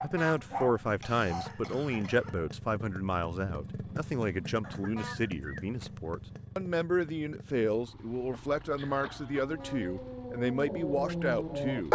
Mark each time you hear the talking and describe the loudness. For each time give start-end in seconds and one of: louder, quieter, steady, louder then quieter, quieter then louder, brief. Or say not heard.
0.0-11.9 steady.